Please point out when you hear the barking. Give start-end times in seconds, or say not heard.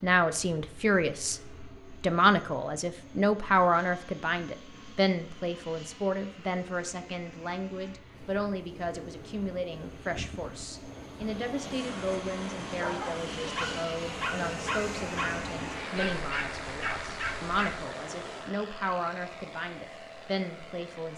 12.7-17.9.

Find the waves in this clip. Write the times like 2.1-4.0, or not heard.
8.1-21.1.